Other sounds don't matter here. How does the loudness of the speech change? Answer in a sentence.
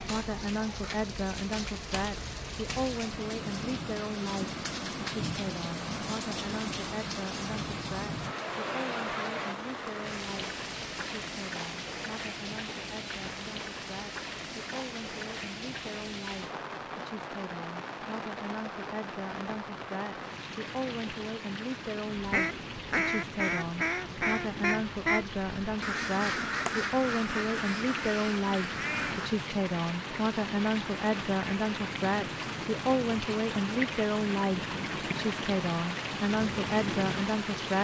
The loudness of the speech goes down, then up.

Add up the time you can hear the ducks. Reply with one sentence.
You can hear the ducks for 7 seconds altogether.